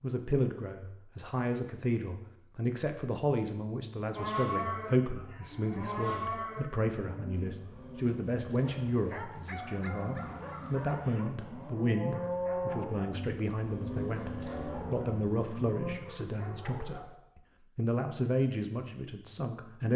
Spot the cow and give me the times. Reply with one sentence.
You can hear the cow from 4.2 to 16.0 s.